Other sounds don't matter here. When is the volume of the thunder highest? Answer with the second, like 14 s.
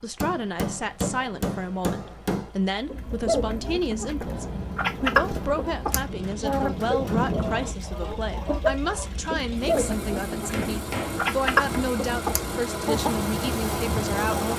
7 s.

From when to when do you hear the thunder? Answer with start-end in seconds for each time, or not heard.
4.2-7.8.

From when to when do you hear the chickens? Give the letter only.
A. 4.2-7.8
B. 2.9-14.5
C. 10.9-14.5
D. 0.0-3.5
B.